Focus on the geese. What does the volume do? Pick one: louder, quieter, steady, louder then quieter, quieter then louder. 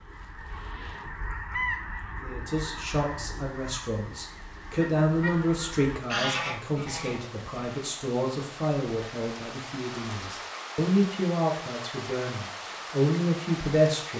quieter then louder.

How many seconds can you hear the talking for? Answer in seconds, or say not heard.
12 s.